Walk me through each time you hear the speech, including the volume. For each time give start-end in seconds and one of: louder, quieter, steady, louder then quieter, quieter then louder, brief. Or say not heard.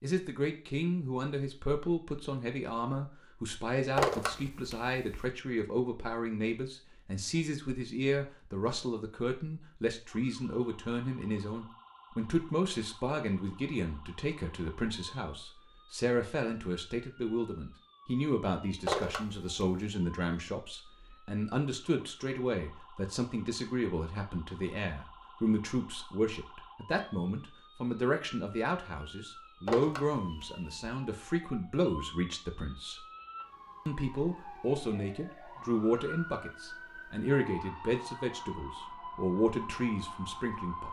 0.0-33.0 steady
33.9-40.8 quieter then louder.